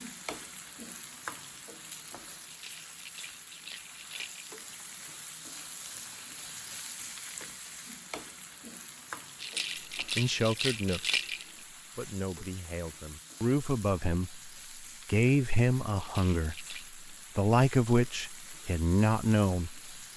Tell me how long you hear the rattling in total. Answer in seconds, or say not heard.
5 s.